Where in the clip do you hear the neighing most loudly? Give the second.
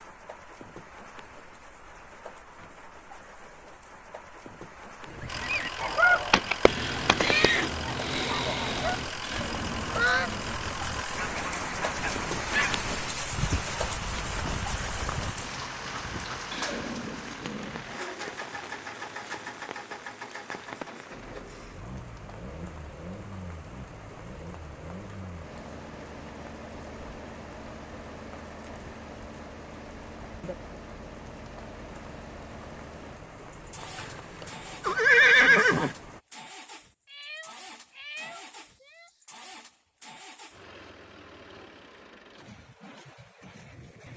35 s.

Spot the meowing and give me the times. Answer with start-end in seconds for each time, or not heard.
6.7-9.1, 37.0-39.2.